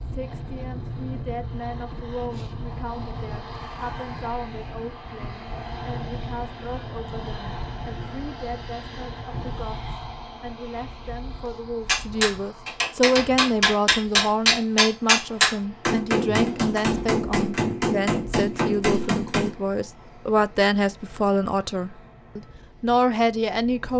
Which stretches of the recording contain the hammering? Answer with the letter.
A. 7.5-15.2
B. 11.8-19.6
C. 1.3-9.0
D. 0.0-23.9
B.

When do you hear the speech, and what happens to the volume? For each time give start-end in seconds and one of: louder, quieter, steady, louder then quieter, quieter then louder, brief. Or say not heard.
0.0-23.9 louder.